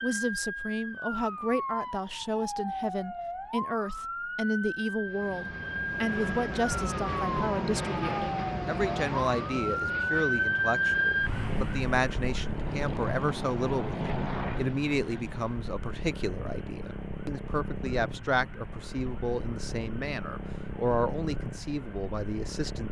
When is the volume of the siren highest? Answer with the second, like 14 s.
11 s.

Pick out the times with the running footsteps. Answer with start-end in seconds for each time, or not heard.
not heard.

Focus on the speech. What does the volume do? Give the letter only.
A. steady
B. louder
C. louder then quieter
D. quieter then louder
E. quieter
A.